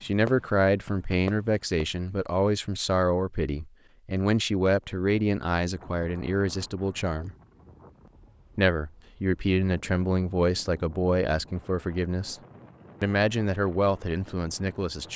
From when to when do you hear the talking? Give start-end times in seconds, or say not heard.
0.0-7.3, 8.6-12.3, 13.0-15.1.